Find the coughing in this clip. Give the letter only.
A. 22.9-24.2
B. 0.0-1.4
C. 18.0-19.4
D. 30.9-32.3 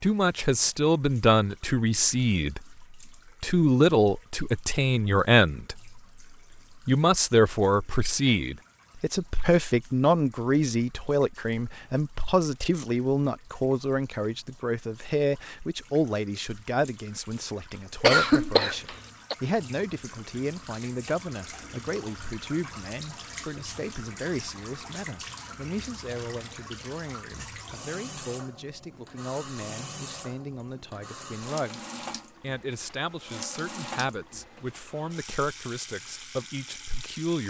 C.